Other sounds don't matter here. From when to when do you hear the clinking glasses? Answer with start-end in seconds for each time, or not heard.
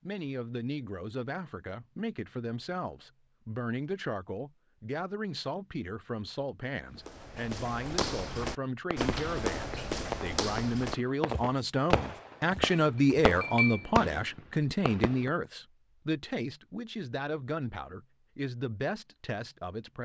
12.5-13.9.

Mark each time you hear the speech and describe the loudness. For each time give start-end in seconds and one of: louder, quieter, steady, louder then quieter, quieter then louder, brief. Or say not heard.
0.1-20.0 louder then quieter.